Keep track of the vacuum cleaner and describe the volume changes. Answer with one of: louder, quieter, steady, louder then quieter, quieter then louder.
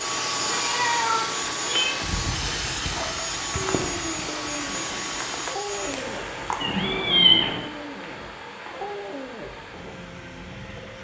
quieter.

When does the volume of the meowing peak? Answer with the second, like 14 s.
7 s.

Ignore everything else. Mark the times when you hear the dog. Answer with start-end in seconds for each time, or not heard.
2.9-10.9.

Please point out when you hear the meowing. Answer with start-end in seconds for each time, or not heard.
0.5-1.9, 6.6-7.6.